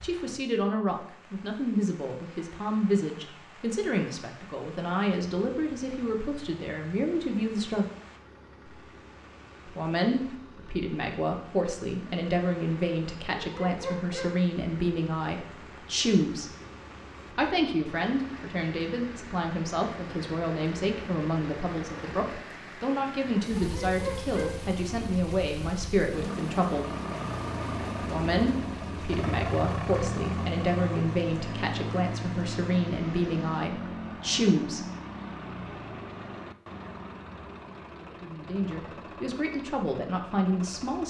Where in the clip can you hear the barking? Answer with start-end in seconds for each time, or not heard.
13.3-14.4, 23.6-24.6.